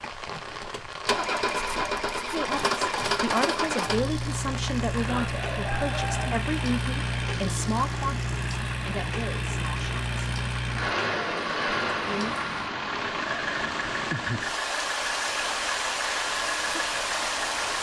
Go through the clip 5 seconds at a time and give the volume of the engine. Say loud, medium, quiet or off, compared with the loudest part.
loud, loud, loud, medium.